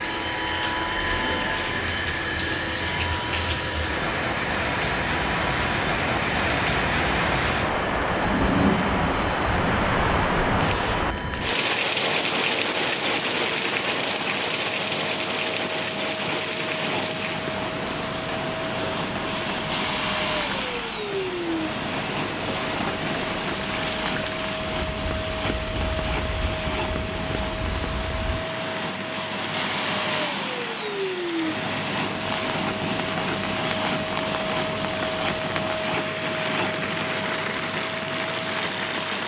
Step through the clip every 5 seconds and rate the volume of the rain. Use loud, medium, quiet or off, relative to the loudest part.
medium, loud, loud, medium, medium, medium, medium, medium.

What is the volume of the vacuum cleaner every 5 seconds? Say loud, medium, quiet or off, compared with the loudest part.
loud, medium, medium, loud, loud, loud, loud, loud.